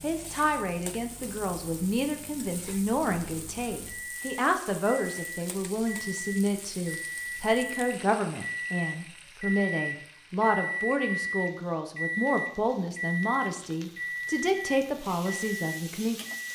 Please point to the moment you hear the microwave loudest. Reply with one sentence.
The volume of the microwave peaks at 11 seconds.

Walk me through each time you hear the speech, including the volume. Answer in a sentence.
You can hear the speech from 0.0 to 16.2 s, at a steady volume.